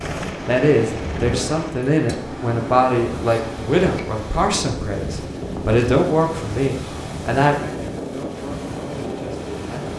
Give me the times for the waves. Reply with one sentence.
You can hear the waves from 0.2 to 9.9 s.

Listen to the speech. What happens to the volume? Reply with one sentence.
The volume of the speech goes down.